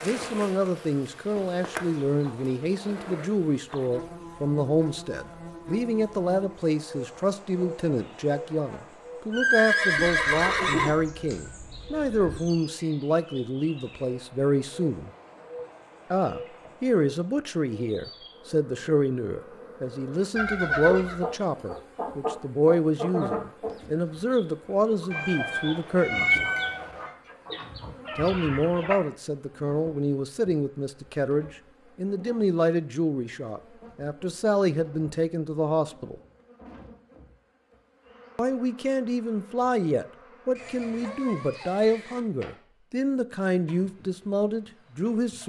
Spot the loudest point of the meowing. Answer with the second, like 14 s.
26 s.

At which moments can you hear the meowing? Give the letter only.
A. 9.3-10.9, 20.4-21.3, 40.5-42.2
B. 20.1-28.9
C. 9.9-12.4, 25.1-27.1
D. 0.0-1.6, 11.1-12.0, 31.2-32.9
C.